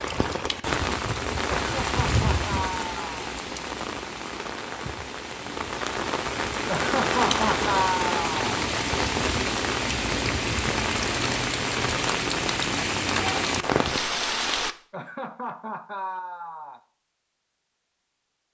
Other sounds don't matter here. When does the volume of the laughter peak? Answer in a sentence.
The loudest moment of the laughter is at 8 seconds.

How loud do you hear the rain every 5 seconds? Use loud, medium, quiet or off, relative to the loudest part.
loud, loud, loud, off.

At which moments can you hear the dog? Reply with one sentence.
The dog can't be heard in this clip.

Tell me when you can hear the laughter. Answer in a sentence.
The laughter can be heard from 1.6 to 3.3 s, from 6.7 to 8.4 s and from 14.9 to 16.8 s.